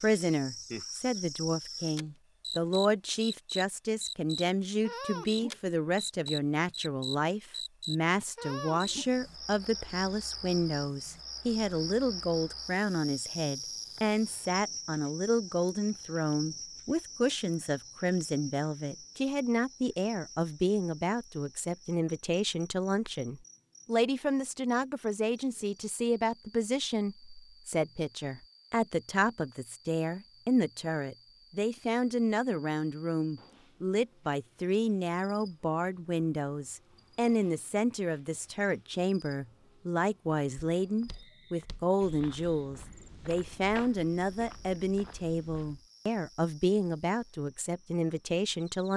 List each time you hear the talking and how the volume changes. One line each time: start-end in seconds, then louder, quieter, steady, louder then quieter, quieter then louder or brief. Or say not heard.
0.0-48.9 steady.